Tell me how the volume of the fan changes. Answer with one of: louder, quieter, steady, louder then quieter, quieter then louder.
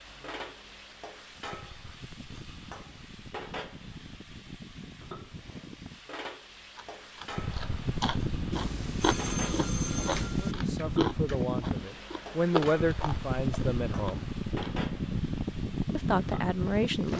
louder.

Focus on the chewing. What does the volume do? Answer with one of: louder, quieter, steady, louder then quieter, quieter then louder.
louder then quieter.